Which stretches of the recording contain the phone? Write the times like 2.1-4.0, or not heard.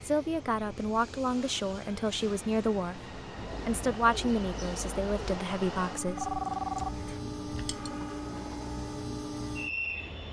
6.2-8.1.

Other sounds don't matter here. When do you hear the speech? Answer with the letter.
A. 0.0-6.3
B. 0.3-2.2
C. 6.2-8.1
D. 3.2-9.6
A.